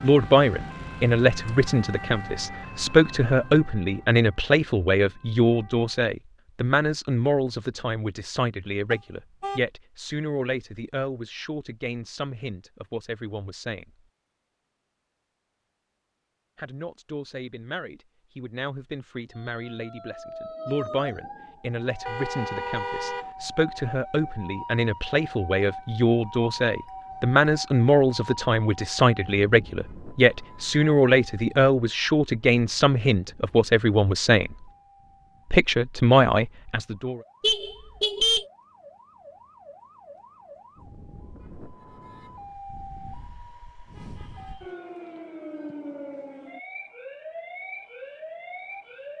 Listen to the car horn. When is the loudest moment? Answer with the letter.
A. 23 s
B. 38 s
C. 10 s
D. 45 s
B.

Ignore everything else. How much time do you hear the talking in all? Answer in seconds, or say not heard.
34 s.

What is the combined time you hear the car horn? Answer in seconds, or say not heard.
3 s.